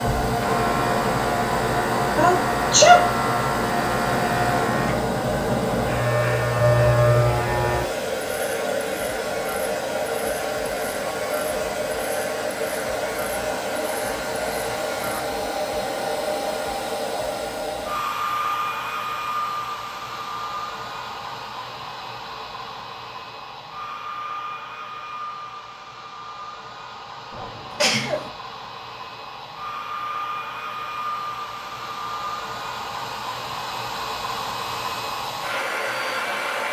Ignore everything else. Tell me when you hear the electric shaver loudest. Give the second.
7 s.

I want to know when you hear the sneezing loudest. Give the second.
3 s.